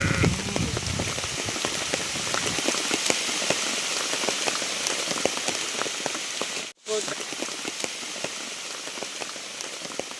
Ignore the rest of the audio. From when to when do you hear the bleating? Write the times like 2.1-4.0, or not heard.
0.0-2.6.